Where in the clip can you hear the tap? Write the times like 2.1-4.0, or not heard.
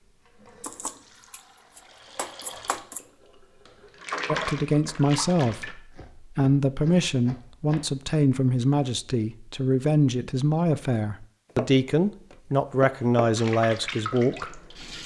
0.0-5.8, 13.3-15.0.